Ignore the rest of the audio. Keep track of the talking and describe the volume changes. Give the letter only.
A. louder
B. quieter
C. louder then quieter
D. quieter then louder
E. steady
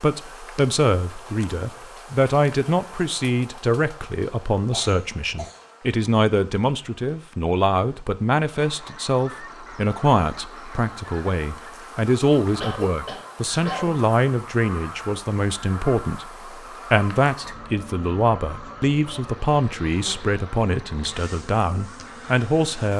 E.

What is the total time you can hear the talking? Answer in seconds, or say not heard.
22 s.